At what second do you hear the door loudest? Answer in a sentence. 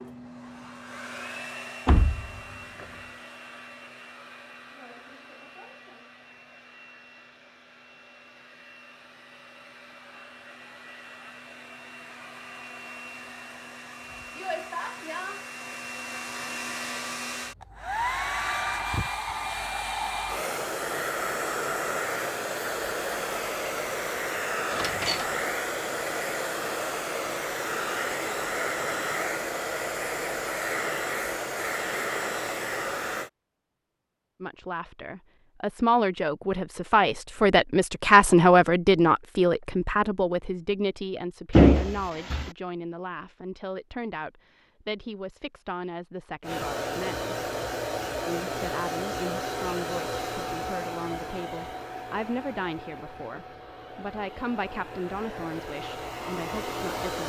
The volume of the door peaks at 42 seconds.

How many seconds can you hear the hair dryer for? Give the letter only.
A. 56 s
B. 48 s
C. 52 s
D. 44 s
D.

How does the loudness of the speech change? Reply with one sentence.
The volume of the speech goes down.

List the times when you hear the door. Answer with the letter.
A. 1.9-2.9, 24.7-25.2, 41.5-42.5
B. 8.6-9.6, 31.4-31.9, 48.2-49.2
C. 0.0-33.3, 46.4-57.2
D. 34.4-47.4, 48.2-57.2
A.